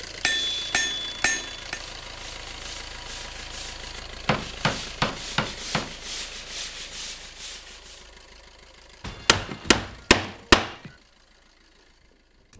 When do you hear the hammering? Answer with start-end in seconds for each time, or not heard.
0.2-1.8, 4.2-6.0, 9.1-10.9.